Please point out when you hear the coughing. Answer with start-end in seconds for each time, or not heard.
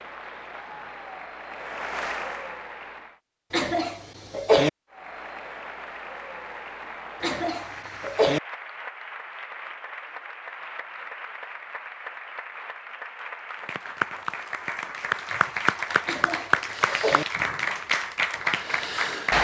3.5-4.7, 7.2-8.4, 16.1-17.2.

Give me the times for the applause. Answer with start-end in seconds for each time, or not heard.
0.0-3.2, 4.9-19.3.